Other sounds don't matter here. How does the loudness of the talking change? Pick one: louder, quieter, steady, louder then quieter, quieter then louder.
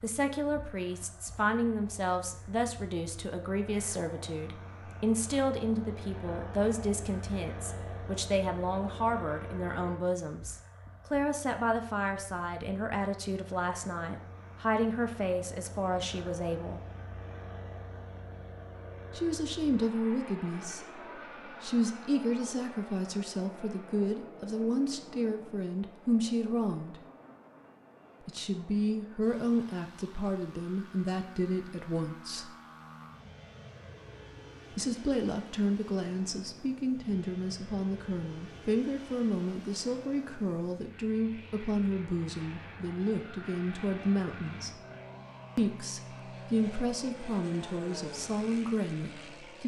steady.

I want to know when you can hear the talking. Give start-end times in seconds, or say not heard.
0.0-16.8, 19.1-27.1, 28.2-32.5, 34.7-44.8, 45.5-49.6.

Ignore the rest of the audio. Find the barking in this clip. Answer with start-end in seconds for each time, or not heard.
not heard.